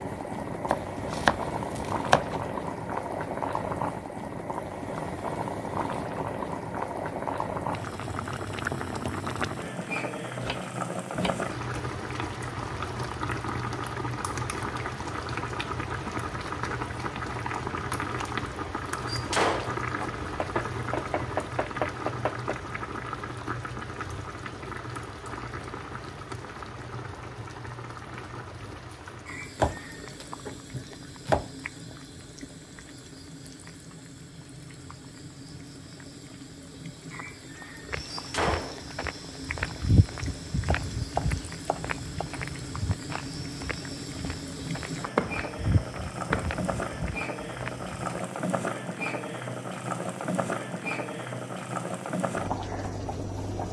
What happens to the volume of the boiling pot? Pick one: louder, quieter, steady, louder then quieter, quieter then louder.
quieter then louder.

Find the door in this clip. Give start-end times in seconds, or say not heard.
19.1-20.1, 38.1-38.9.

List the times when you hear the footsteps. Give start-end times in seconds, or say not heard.
37.9-48.2.